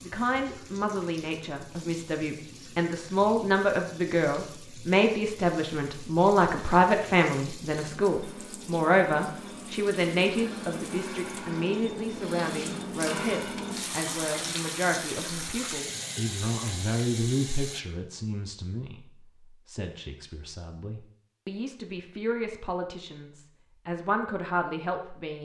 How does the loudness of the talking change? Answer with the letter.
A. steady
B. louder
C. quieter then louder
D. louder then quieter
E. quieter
E.